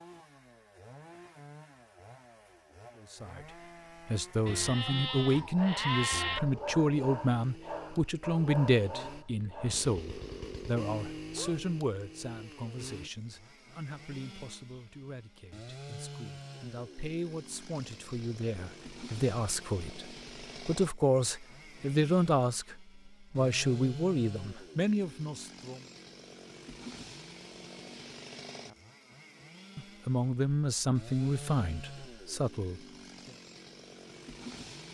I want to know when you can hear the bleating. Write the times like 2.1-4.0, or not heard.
4.5-6.4.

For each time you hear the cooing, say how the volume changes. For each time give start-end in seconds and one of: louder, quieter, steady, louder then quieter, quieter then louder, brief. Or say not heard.
not heard.